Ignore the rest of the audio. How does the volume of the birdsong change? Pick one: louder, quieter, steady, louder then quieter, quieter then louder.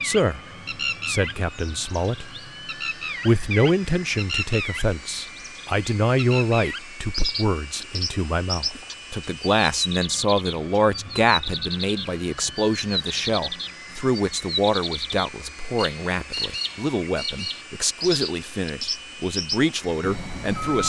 steady.